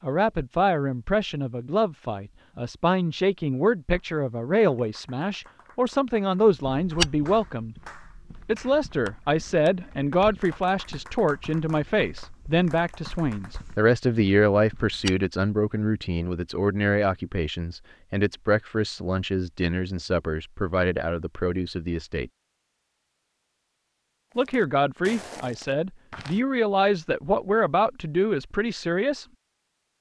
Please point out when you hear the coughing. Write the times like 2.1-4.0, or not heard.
not heard.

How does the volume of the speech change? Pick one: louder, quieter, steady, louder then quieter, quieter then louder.
steady.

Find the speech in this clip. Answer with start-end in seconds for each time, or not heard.
0.0-7.8, 8.4-22.3, 24.4-29.2.